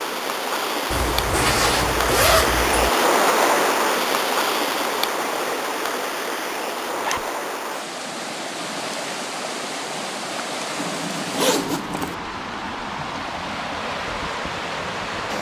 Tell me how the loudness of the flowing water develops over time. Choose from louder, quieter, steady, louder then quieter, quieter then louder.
quieter.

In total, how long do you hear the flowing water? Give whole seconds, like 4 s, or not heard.
15 s.